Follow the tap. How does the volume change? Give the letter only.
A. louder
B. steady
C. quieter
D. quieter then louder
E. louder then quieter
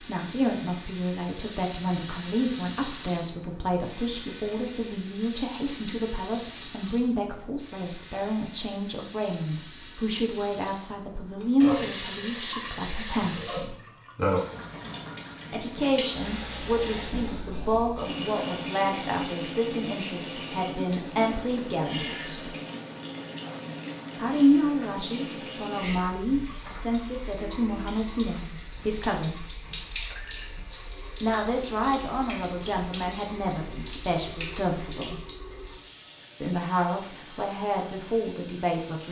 C.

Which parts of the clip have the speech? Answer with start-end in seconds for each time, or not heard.
0.1-13.8, 15.5-22.6, 24.1-29.4, 31.2-35.2, 36.4-39.0.